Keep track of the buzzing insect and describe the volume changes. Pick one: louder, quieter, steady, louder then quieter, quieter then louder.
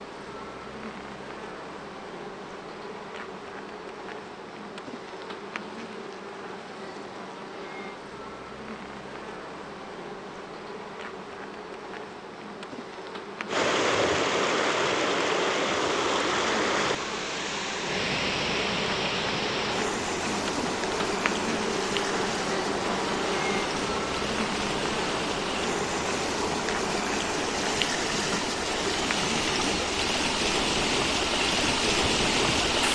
louder.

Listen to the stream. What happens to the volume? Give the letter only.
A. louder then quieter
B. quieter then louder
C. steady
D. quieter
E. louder
B.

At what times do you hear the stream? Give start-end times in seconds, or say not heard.
13.4-32.8.